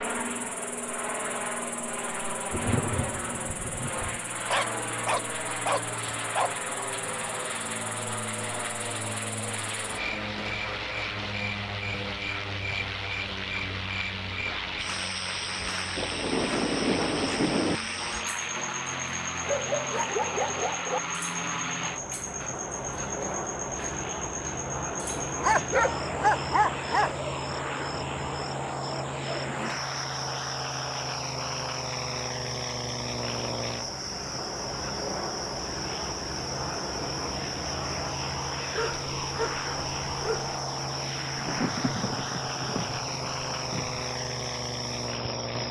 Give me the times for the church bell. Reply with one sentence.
The church bell can't be heard in this clip.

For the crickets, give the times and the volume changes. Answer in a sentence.
You can hear the crickets from 0.0 to 45.6 s, getting louder.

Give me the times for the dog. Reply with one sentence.
You can hear the dog from 4.5 to 6.5 s, from 19.4 to 21.0 s, from 25.4 to 27.1 s and from 38.7 to 40.5 s.